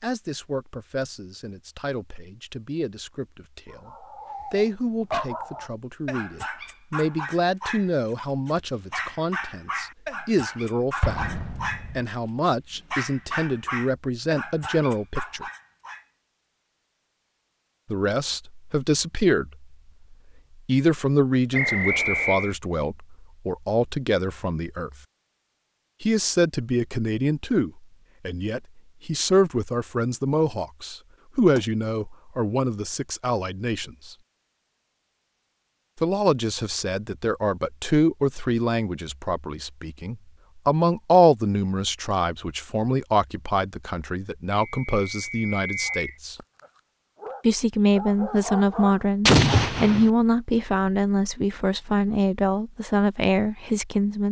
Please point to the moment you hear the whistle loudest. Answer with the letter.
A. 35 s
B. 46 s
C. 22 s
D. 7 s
C.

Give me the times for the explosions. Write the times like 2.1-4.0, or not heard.
11.0-11.9, 49.2-50.1.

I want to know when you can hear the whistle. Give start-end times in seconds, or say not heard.
21.5-22.6, 44.5-46.1.